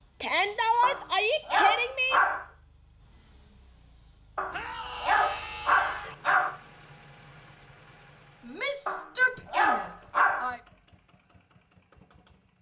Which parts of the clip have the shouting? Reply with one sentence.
The shouting can be heard from 0.2 to 2.2 s, from 4.5 to 6.2 s and from 8.4 to 10.6 s.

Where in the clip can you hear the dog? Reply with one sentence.
You can hear the dog from 0.8 to 2.5 s, from 4.3 to 6.5 s and from 8.8 to 10.5 s.